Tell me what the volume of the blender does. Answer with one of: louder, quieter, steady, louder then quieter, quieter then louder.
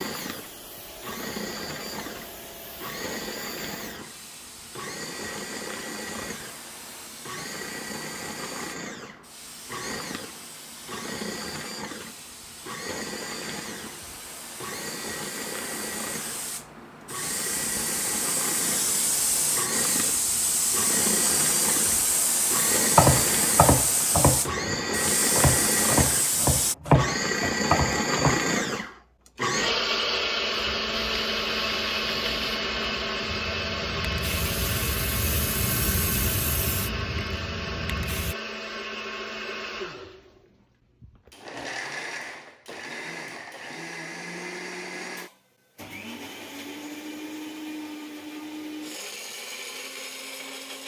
louder then quieter.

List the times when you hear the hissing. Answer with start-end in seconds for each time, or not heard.
0.0-26.8, 30.5-38.4.